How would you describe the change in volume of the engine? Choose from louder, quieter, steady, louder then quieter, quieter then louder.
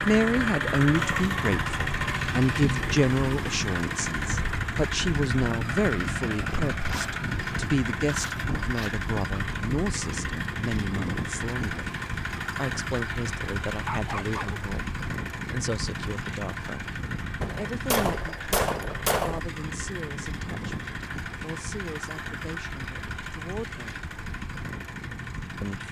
quieter.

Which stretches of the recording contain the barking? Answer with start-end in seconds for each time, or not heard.
13.7-14.7.